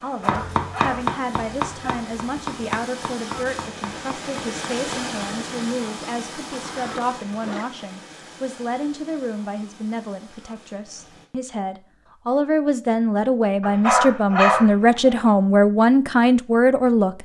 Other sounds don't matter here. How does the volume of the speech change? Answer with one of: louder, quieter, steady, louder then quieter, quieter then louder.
louder.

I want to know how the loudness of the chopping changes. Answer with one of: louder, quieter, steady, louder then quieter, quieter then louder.
quieter.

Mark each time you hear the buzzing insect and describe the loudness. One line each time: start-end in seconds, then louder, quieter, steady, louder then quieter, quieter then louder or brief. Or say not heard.
not heard.